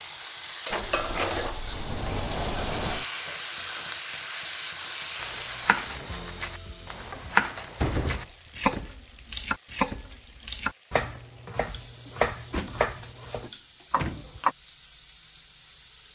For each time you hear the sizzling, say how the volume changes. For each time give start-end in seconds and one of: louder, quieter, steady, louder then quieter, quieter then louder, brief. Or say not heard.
0.0-16.1 quieter.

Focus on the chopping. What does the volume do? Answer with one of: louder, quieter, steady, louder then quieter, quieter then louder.
louder then quieter.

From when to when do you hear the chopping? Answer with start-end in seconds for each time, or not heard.
5.2-14.6.